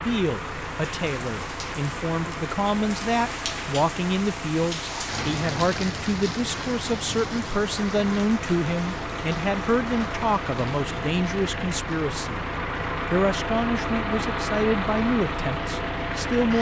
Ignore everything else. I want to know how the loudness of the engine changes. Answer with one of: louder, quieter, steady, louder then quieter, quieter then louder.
louder.